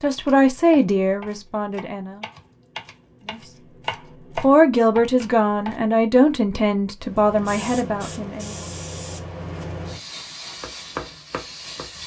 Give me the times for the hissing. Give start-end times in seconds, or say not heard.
7.0-12.0.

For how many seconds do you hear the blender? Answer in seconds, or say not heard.
not heard.